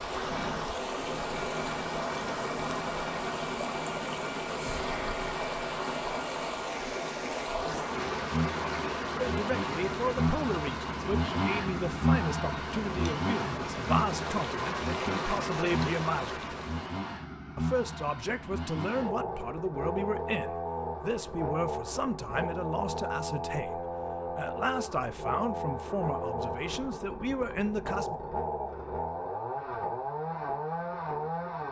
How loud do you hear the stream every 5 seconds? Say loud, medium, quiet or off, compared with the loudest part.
loud, loud, loud, loud, off, off, off.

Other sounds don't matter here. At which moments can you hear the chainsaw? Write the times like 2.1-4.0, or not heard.
0.0-31.6.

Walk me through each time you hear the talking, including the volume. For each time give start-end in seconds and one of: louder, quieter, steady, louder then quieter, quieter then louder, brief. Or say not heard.
9.2-16.4 steady
17.6-28.1 steady.